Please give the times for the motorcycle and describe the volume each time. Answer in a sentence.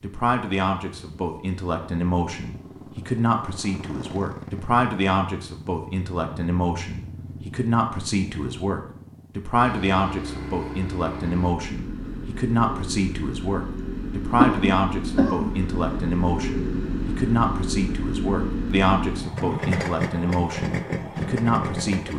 The motorcycle can be heard from 0.0 to 22.1 s, getting louder.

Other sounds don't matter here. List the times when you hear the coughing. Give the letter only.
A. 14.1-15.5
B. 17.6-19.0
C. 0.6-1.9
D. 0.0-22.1
A.